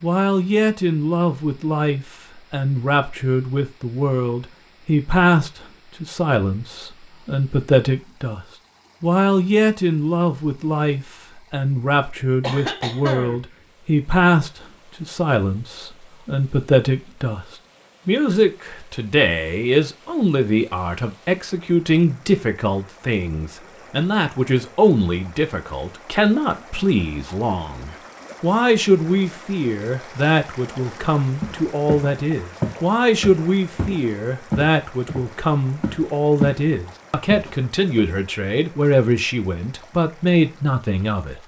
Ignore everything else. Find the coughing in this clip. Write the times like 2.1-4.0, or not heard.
12.4-13.4.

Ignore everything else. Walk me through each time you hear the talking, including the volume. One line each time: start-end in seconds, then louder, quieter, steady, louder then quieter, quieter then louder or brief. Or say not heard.
0.0-41.4 steady.